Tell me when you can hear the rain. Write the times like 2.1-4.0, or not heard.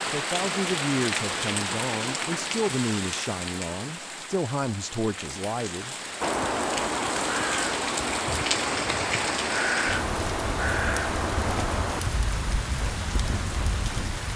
0.0-14.3.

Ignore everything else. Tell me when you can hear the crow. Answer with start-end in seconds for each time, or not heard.
6.2-13.9.